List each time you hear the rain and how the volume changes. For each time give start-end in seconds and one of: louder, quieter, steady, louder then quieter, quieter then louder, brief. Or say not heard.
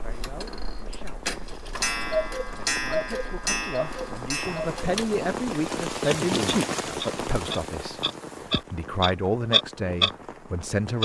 0.0-10.9 louder then quieter.